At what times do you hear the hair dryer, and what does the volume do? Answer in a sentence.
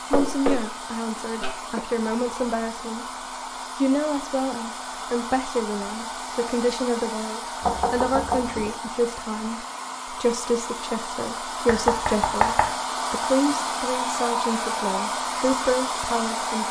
The hair dryer can be heard from 0.0 to 16.6 s, getting louder.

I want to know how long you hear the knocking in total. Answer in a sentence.
The knocking can be heard for 4 seconds in total.